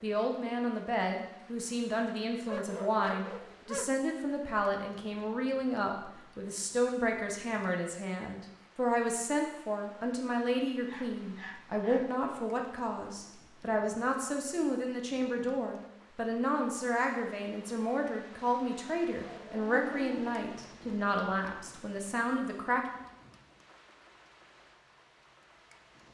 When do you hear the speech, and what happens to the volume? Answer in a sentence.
The speech can be heard from 0.0 to 22.8 s, at a steady volume.